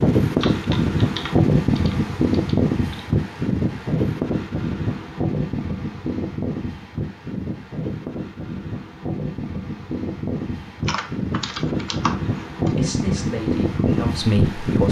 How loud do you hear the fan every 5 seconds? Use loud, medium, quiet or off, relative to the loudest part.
loud, medium, loud.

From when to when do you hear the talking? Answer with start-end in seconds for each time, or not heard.
12.7-14.8.